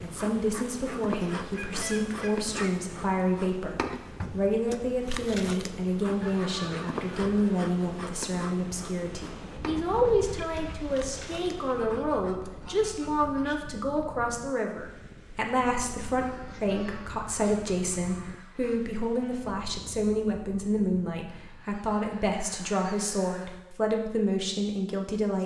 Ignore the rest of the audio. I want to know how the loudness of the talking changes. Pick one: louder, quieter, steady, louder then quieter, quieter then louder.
steady.